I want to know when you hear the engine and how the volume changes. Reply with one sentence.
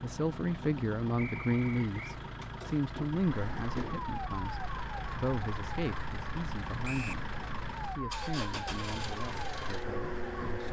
The engine can be heard from 0.0 to 10.6 s, at a steady volume.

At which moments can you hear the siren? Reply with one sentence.
You can hear the siren from 3.2 to 10.6 s.